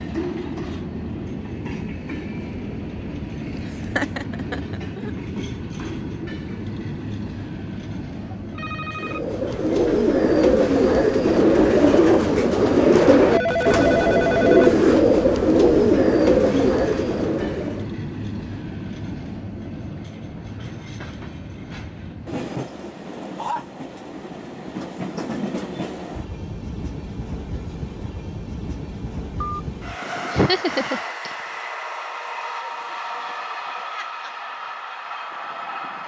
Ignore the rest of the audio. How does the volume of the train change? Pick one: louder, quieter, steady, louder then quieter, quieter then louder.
steady.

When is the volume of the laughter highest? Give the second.
31 s.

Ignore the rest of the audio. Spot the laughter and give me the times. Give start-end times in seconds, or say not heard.
4.0-5.1, 30.3-31.4.